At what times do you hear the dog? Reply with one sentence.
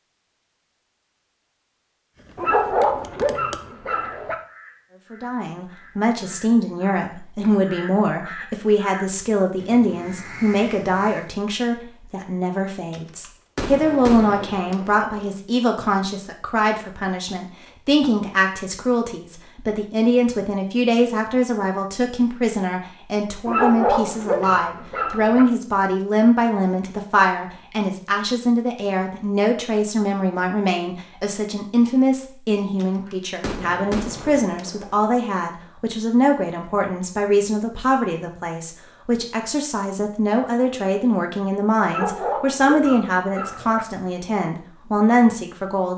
The dog can be heard from 2.4 to 4.3 s, from 23.4 to 25.4 s and from 41.9 to 43.9 s.